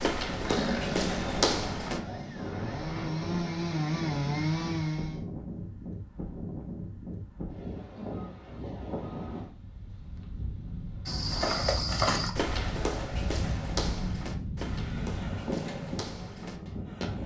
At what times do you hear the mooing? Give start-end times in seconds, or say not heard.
not heard.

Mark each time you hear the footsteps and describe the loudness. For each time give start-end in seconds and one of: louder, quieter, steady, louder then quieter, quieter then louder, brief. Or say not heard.
0.0-2.0 brief
11.1-17.2 quieter.